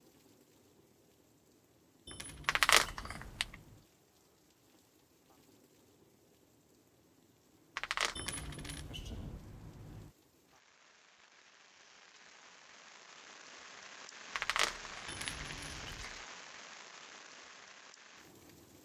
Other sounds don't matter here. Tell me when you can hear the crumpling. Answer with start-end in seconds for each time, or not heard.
2.5-3.5, 7.8-8.5, 14.3-16.2.